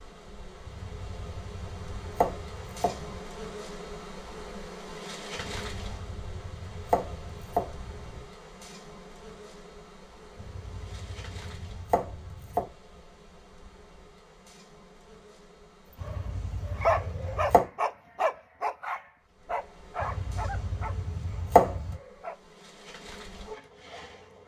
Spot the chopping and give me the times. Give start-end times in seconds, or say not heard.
0.7-3.2, 5.3-8.2, 10.3-12.7, 15.9-17.6, 20.0-21.9.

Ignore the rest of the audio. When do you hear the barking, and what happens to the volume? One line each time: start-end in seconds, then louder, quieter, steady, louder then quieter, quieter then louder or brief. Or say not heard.
16.0-22.4 quieter.